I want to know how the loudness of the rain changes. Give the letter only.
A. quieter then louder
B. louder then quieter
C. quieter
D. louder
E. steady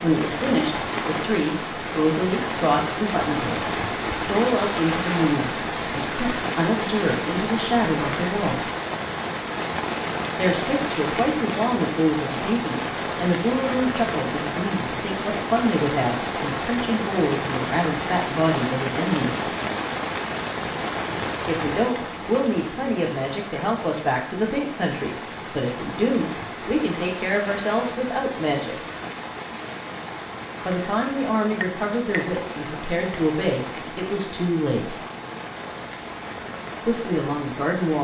C.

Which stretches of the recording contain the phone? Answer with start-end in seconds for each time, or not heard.
not heard.